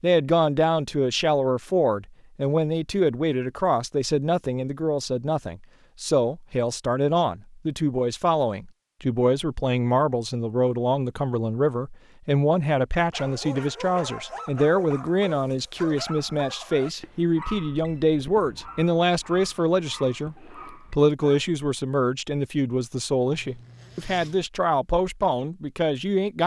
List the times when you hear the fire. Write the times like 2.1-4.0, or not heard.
not heard.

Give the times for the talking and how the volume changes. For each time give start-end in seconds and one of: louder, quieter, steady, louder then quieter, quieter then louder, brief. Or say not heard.
0.0-26.4 steady.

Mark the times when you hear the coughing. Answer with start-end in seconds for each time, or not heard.
not heard.